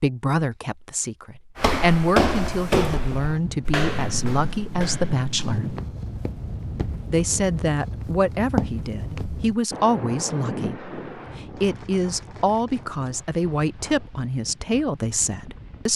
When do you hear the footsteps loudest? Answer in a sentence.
The loudest moment of the footsteps is at 2 seconds.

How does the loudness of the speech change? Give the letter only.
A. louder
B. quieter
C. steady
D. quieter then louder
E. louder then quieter
C.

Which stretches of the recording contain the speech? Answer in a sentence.
You can hear the speech from 0.0 to 5.8 s and from 7.1 to 15.9 s.